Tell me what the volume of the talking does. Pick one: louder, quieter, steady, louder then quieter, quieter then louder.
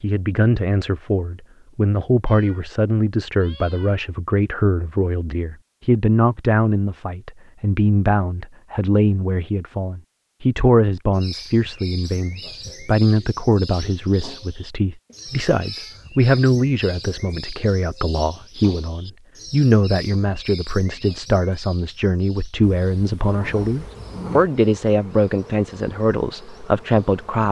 steady.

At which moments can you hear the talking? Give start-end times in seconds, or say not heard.
0.0-27.4.